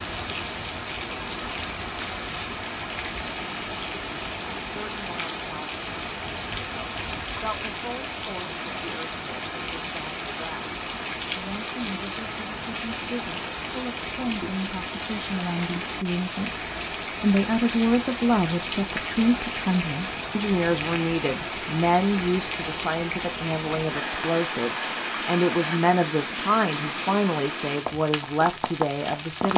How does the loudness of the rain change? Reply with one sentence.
The volume of the rain stays about the same.